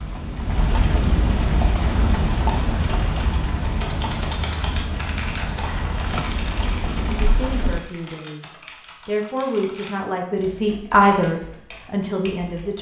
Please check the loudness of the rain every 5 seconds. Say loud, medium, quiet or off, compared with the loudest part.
loud, loud, off.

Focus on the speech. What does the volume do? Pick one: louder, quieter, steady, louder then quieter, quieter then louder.
louder then quieter.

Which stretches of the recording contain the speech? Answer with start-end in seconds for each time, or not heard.
7.2-12.7.